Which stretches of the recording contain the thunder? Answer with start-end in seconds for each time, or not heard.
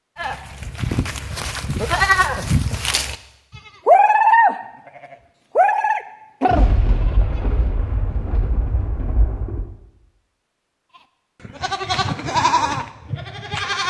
6.5-9.7.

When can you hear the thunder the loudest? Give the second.
7 s.